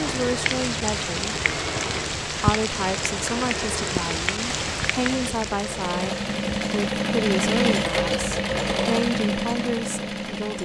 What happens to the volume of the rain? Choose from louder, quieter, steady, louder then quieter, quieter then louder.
quieter.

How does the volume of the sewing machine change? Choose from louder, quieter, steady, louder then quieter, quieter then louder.
louder.